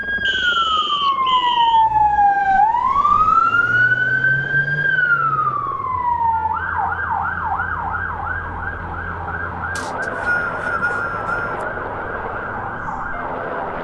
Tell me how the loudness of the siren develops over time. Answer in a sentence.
The volume of the siren goes down.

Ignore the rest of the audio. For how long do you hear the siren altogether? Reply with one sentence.
The siren can be heard for 14 seconds in total.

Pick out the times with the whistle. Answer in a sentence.
The whistle can be heard from 0.2 to 1.9 s and from 9.8 to 11.7 s.